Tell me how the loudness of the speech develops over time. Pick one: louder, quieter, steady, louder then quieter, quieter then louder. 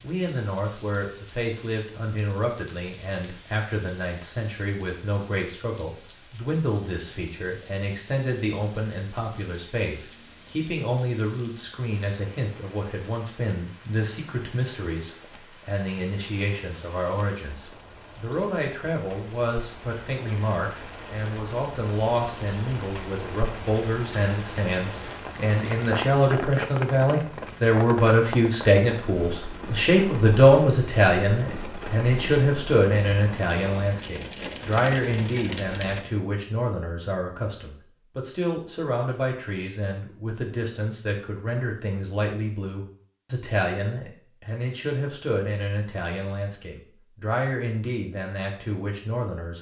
louder then quieter.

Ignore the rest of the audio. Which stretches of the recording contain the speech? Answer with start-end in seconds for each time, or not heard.
0.0-49.5.